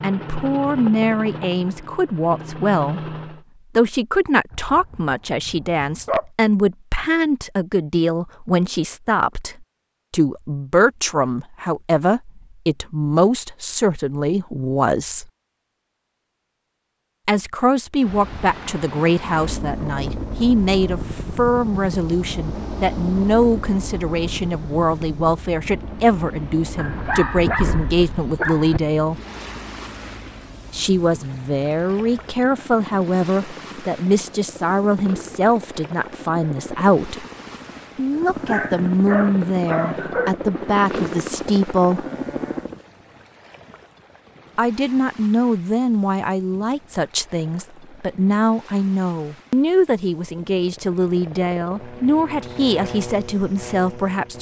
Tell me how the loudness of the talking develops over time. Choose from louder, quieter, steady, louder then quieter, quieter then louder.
steady.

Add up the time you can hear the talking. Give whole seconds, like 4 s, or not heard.
47 s.